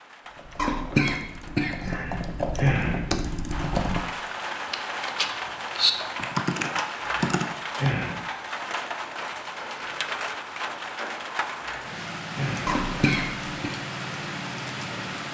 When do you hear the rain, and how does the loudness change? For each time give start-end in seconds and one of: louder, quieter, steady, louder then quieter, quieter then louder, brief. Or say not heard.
0.0-15.3 louder.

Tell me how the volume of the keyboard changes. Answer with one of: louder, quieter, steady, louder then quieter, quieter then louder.
louder.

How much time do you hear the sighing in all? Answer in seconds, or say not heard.
4 s.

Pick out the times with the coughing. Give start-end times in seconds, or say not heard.
0.6-1.9, 12.7-13.7.